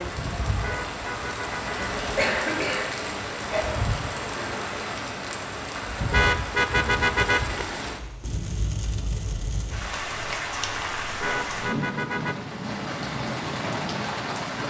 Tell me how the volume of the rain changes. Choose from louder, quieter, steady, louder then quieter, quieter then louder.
steady.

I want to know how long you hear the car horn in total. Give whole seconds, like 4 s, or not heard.
4 s.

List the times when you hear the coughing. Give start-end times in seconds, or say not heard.
2.1-3.6.